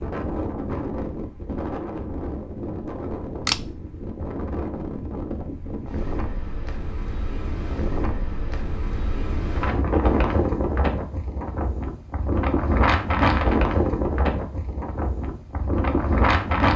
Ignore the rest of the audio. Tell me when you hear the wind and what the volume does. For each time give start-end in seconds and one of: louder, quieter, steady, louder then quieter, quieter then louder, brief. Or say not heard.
0.0-16.7 louder.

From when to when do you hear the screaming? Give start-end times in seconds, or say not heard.
not heard.